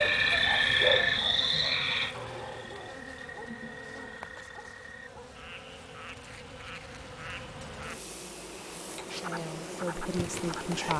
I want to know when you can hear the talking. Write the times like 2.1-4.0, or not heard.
9.2-10.9.